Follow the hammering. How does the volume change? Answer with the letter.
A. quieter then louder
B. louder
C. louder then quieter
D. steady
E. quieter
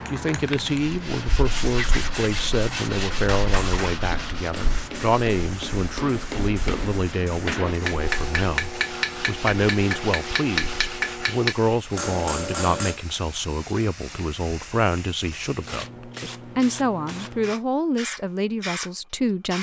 B.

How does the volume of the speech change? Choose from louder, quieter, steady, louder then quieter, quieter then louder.
steady.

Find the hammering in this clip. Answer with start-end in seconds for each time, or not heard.
3.1-13.0.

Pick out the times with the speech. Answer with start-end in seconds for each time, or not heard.
0.1-19.5.